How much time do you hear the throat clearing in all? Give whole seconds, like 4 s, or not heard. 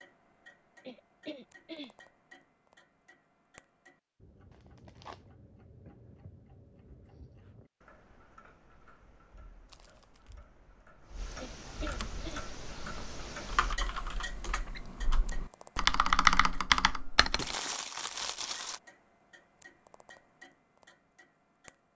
2 s.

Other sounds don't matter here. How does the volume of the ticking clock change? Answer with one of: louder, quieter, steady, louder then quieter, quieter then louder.
louder then quieter.